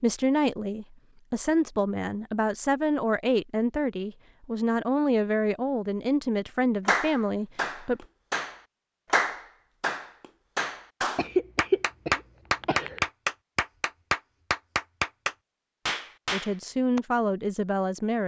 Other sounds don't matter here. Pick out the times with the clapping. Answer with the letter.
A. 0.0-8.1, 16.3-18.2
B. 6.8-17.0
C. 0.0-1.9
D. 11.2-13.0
B.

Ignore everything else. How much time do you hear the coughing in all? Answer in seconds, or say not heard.
2 s.